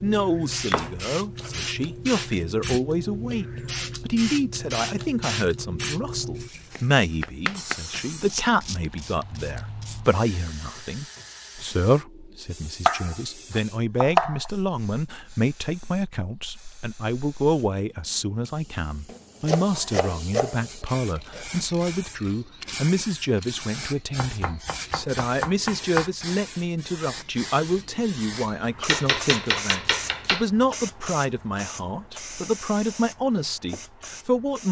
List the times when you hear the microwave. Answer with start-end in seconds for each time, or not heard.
not heard.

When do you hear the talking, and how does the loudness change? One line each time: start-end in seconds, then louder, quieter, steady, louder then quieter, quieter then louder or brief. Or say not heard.
0.0-34.6 steady.